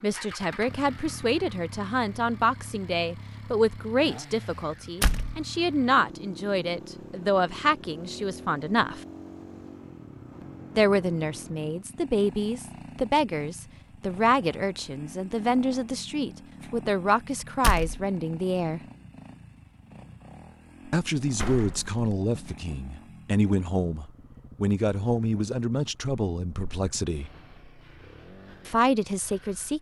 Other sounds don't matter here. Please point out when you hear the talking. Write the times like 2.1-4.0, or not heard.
0.0-9.0, 10.8-18.8, 20.9-27.3, 28.6-29.7.